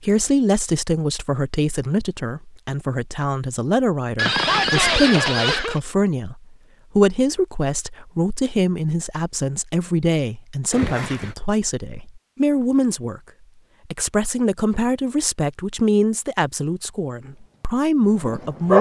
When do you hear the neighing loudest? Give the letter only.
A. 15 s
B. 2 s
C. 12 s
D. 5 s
D.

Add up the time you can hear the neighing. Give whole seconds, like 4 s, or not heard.
2 s.